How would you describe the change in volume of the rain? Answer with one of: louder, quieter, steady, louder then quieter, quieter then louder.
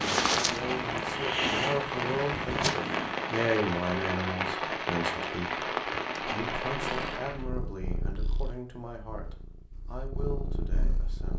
steady.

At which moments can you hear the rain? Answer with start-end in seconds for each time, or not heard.
0.0-7.5.